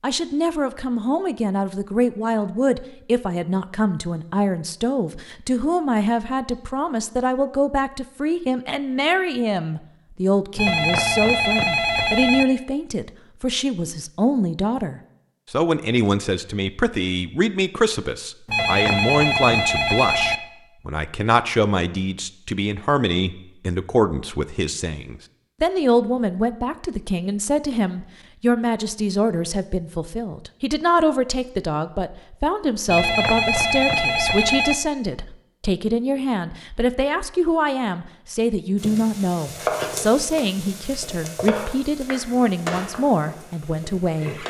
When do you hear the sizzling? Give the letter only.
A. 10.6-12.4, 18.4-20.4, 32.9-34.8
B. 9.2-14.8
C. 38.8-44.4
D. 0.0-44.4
C.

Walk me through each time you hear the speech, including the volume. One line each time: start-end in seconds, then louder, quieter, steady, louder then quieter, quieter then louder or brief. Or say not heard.
0.0-44.4 steady.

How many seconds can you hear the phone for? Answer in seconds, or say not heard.
6 s.